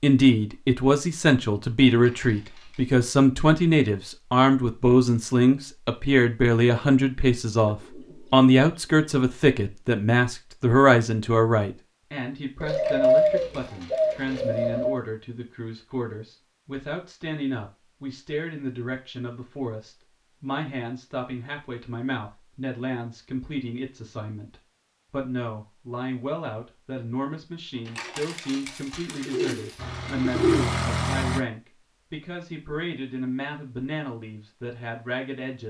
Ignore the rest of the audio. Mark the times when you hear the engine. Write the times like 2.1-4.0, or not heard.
29.8-31.4.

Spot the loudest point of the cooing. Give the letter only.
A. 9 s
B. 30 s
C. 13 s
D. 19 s
C.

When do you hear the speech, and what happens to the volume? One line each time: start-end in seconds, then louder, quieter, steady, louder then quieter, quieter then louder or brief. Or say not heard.
0.0-35.6 quieter.